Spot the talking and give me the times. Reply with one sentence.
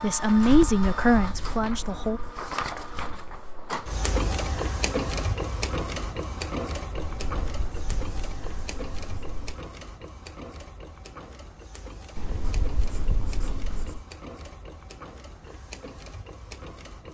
You can hear the talking from 0.0 to 2.2 s.